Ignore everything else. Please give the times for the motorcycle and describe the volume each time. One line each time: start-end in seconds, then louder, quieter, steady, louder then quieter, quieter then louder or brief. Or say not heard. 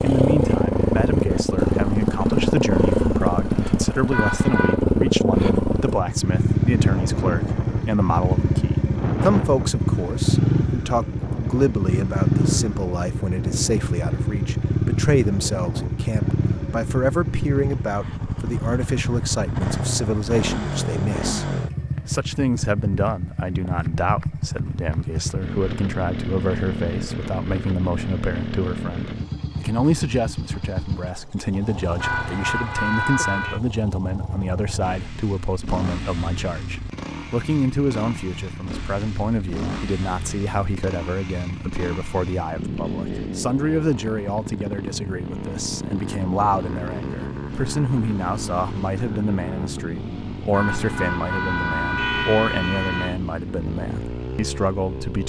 0.0-55.2 quieter.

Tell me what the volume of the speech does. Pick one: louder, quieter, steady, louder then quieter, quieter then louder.
steady.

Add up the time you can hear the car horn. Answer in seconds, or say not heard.
5 s.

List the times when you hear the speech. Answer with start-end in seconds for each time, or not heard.
0.0-21.4, 22.1-55.2.